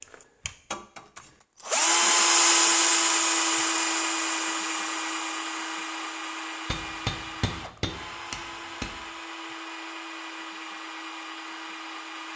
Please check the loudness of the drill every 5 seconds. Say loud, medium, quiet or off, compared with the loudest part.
loud, quiet, quiet.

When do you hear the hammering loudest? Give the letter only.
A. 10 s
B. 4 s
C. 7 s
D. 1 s
C.